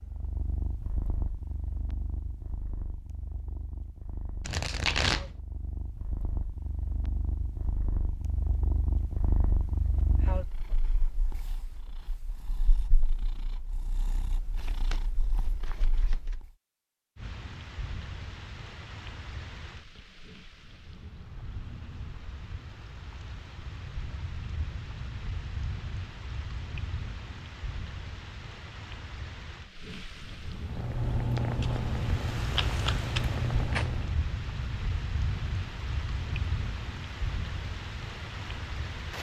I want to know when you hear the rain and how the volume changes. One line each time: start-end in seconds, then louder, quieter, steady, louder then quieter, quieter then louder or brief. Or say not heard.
17.1-39.1 louder.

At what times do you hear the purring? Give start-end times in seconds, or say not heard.
0.0-16.5, 30.6-34.2.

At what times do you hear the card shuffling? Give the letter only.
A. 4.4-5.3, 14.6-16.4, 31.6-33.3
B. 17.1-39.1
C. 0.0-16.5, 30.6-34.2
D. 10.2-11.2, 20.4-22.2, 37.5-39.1
A.